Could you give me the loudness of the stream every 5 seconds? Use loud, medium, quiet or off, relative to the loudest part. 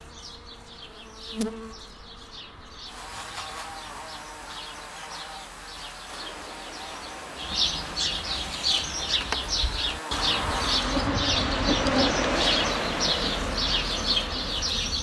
off, quiet, loud.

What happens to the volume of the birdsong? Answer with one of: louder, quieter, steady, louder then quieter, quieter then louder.
louder.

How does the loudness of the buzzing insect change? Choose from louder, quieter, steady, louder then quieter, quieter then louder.
louder.